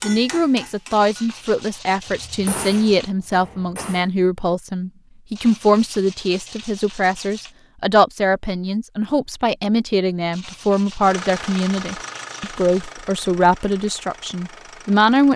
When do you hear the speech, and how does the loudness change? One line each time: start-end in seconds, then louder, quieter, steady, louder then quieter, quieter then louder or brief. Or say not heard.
0.0-15.3 steady.